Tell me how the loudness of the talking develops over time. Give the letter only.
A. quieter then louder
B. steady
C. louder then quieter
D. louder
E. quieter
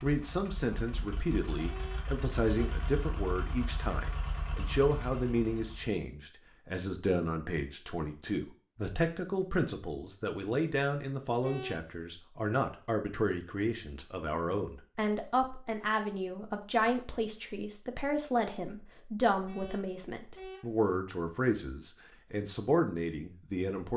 B.